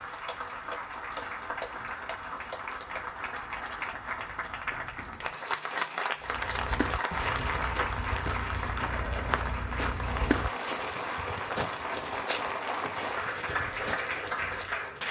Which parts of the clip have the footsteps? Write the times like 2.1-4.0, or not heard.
6.2-14.7.